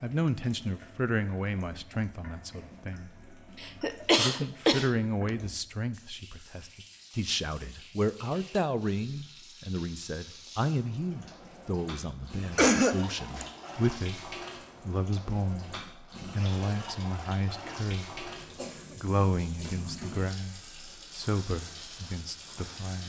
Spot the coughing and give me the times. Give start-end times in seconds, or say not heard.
3.8-4.9, 12.6-13.4, 18.1-19.0.